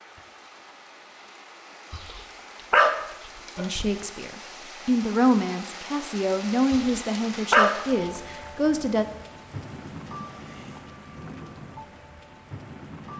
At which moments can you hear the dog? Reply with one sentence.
The dog can be heard from 1.9 to 3.9 s and from 6.7 to 7.8 s.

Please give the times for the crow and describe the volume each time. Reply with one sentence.
You can't hear the crow here.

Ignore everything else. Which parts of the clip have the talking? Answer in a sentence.
The talking can be heard from 3.5 to 9.1 s.